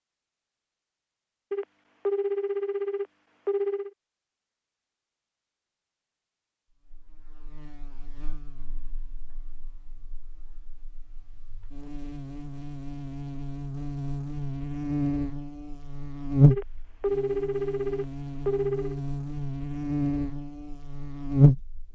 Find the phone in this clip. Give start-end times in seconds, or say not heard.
1.5-3.9, 16.5-19.0.